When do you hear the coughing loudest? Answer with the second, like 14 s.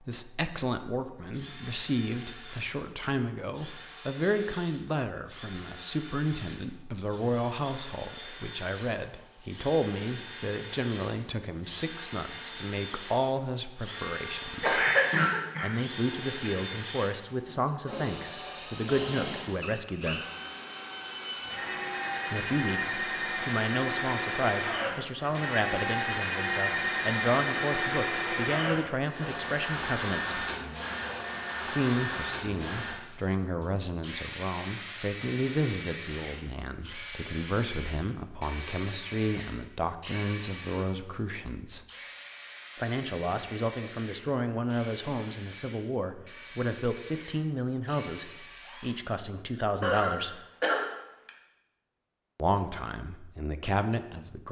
15 s.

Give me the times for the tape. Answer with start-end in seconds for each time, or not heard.
not heard.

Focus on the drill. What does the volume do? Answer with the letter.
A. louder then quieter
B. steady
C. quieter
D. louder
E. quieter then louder
A.